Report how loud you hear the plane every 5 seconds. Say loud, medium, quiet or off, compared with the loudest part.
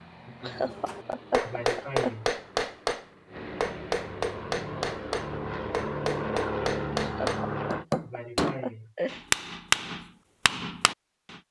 medium, loud, off.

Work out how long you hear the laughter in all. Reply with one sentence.
The laughter can be heard for 4 seconds in total.